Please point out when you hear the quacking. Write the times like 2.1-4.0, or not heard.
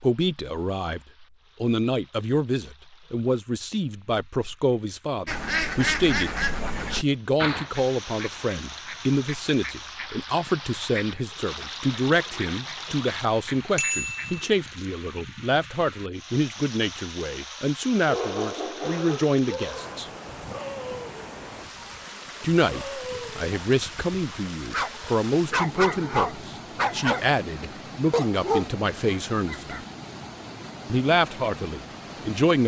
5.2-14.8.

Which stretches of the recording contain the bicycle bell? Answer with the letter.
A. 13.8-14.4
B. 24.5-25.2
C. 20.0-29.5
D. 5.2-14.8
A.